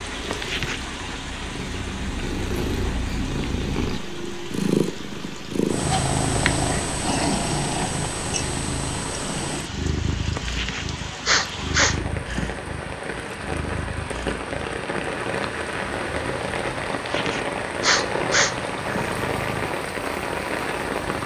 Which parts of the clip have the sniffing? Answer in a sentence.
The sniffing can be heard from 0.2 to 0.8 s, from 10.3 to 12.6 s and from 16.9 to 19.2 s.